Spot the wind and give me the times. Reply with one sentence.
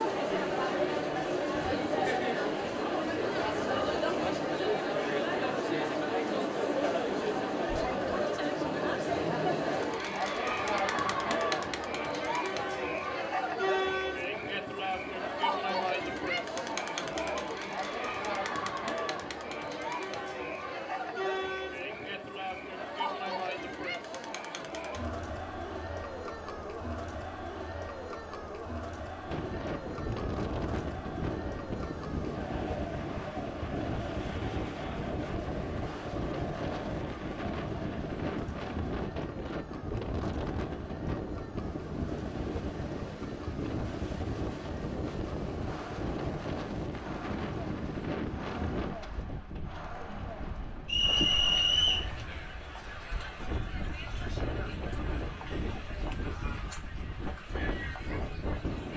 The wind can be heard from 29.2 to 58.9 s.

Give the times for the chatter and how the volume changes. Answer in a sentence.
You can hear the chatter from 0.0 to 58.9 s, getting quieter.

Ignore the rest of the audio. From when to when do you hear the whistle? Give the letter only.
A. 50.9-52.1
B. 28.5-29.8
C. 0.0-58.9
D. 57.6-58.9
A.